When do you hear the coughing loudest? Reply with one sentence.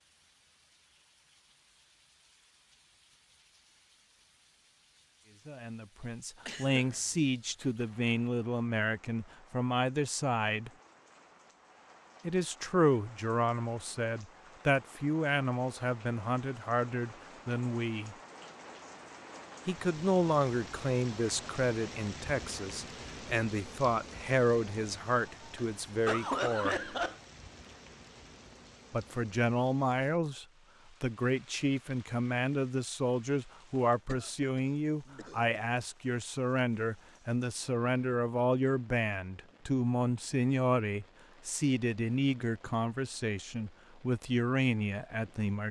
The volume of the coughing peaks at 26 seconds.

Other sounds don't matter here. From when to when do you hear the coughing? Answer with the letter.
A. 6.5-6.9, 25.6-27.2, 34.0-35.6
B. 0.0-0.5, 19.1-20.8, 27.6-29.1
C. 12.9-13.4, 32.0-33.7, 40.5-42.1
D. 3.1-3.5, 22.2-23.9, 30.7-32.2
A.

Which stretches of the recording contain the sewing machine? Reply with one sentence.
You can't hear the sewing machine here.